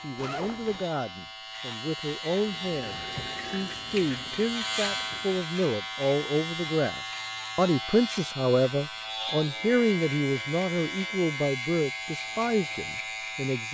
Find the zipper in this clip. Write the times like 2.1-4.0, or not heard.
0.1-0.8.